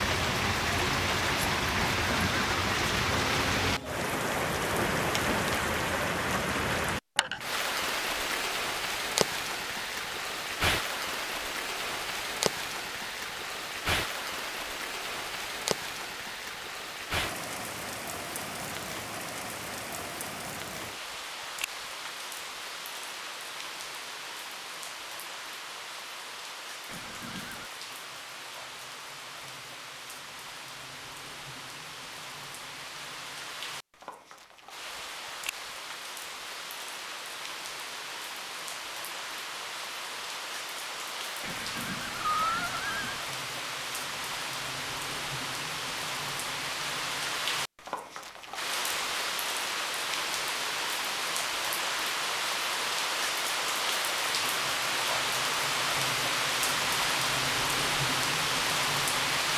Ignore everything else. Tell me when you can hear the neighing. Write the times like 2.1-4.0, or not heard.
1.8-2.5, 26.9-27.7, 41.4-43.2.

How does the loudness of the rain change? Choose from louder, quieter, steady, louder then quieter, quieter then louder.
quieter then louder.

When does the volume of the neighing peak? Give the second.
42 s.